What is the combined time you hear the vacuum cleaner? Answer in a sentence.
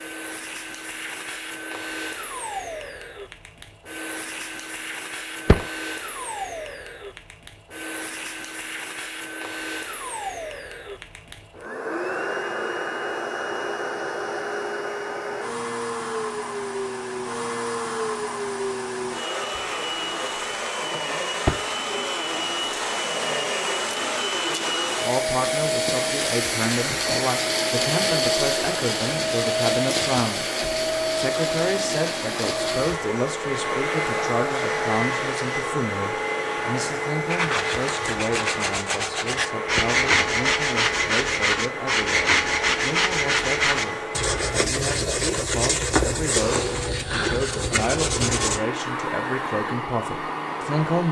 The vacuum cleaner can be heard for 51 seconds in total.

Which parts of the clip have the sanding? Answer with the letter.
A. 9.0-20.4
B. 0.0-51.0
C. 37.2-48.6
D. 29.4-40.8
C.